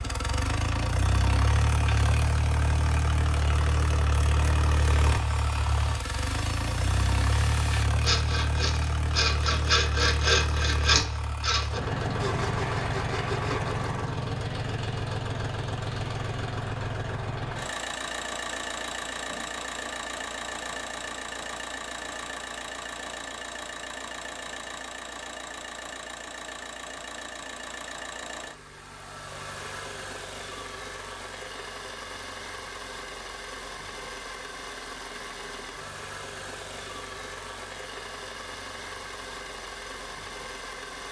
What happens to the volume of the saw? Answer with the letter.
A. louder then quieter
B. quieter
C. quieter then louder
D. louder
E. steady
A.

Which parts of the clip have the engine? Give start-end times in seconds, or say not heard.
0.0-41.0.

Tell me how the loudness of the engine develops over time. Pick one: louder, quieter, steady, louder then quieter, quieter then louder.
quieter.